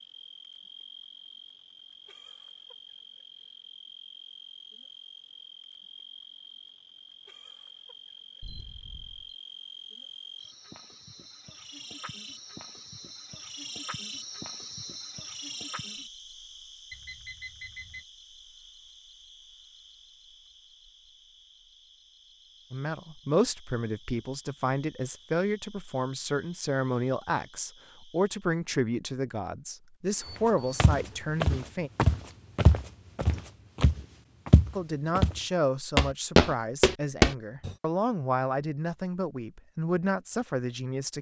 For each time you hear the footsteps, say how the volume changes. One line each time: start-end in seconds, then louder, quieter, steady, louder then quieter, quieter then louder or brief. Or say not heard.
30.8-37.8 louder.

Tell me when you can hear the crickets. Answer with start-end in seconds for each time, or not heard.
0.0-28.4.